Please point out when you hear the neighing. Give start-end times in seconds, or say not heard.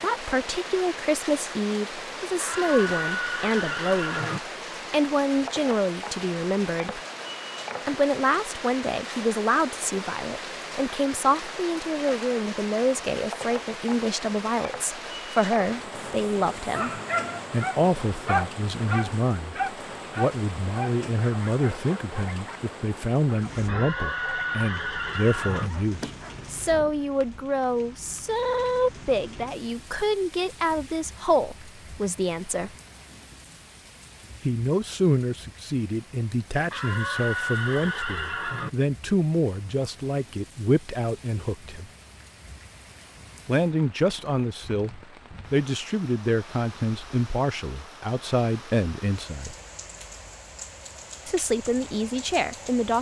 2.4-4.4, 23.6-25.7, 36.7-38.7.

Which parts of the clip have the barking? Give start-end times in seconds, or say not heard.
15.9-22.6, 23.2-24.7, 25.6-27.4.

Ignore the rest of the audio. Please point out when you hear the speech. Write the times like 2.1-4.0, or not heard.
0.0-7.0, 7.8-16.9, 17.5-32.7, 34.4-41.9, 43.5-49.5, 51.2-52.9.